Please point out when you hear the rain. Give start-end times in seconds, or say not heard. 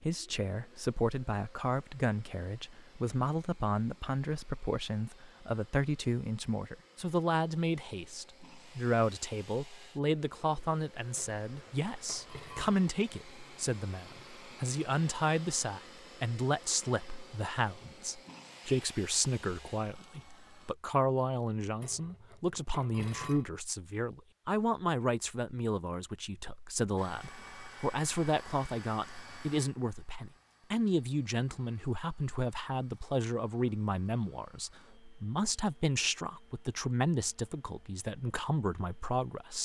not heard.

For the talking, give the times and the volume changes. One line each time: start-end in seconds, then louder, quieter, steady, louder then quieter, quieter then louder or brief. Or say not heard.
0.0-39.5 steady.